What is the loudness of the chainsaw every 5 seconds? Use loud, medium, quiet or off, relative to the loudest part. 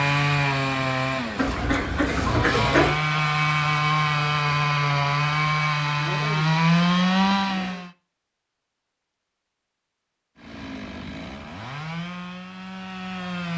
loud, loud, quiet.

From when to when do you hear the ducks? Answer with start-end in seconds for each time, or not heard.
1.4-3.0.